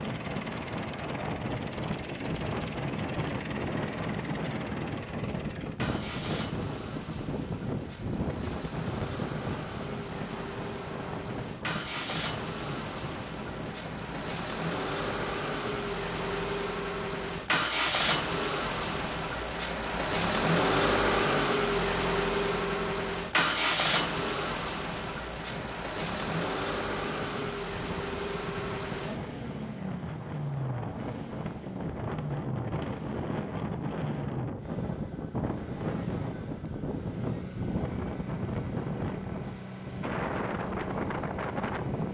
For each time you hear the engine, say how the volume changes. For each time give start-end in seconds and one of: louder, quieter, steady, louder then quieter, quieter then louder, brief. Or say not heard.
0.0-42.0 louder then quieter.